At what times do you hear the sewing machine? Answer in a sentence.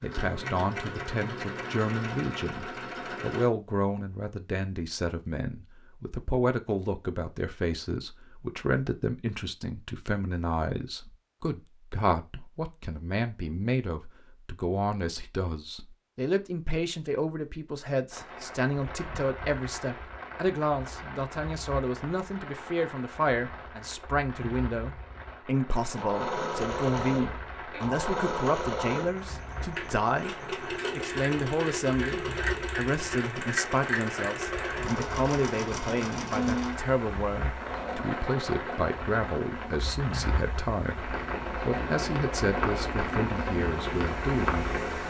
You can hear the sewing machine from 0.0 to 3.5 s and from 25.9 to 45.0 s.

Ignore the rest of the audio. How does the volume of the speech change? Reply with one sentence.
The volume of the speech stays about the same.